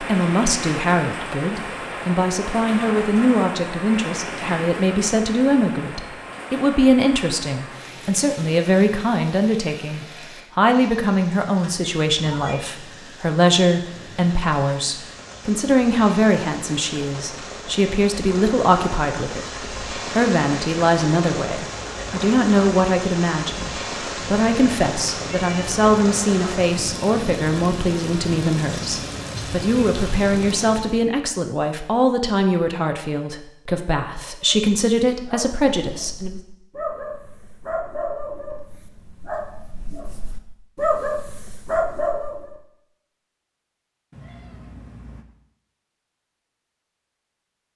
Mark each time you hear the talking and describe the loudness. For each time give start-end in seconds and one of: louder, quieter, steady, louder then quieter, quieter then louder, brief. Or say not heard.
0.0-36.4 steady.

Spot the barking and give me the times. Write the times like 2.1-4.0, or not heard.
34.2-42.6.